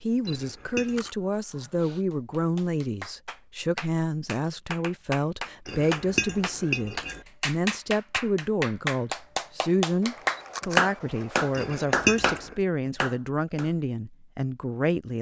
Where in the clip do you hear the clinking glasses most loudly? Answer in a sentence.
The volume of the clinking glasses peaks at 12 seconds.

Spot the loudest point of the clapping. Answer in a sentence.
The volume of the clapping peaks at 11 seconds.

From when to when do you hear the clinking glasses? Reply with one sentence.
You can hear the clinking glasses from 0.2 to 1.1 s, from 5.7 to 7.2 s and from 11.6 to 12.6 s.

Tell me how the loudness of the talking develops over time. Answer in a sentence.
The loudness of the talking stays about the same.